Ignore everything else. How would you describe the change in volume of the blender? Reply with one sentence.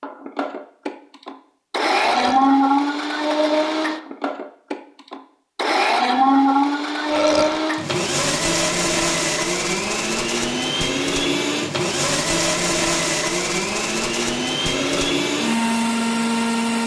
The volume of the blender stays about the same.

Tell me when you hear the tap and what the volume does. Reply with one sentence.
The tap can't be heard in this clip.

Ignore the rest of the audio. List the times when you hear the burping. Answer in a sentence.
The burping can be heard from 2.0 to 2.5 s, from 7.1 to 7.6 s and from 14.7 to 15.1 s.